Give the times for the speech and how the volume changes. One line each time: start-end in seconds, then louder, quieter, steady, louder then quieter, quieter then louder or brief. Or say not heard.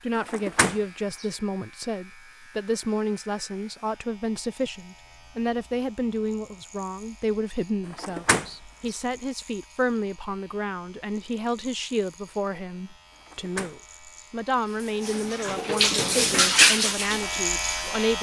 0.0-18.1 steady.